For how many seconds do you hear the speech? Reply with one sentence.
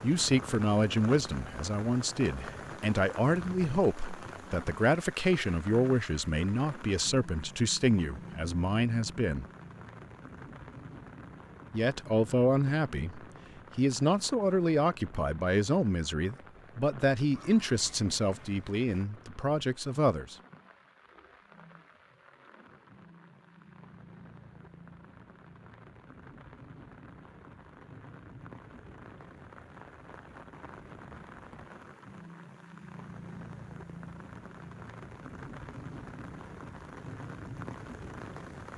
You can hear the speech for 18 seconds altogether.